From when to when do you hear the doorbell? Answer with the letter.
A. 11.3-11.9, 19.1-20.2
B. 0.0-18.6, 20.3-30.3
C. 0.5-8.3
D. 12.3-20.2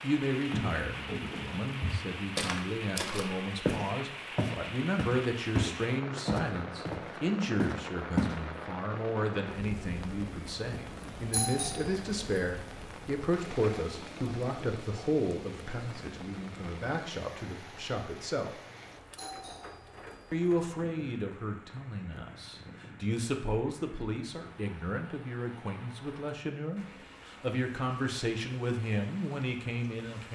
A.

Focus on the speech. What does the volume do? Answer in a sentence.
The volume of the speech stays about the same.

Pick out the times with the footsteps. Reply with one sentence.
The footsteps can be heard from 0.5 to 8.3 s.